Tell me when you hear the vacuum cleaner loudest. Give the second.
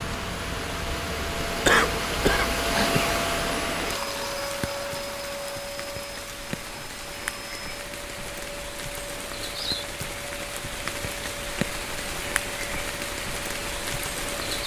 3 s.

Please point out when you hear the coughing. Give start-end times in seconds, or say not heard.
1.6-3.1.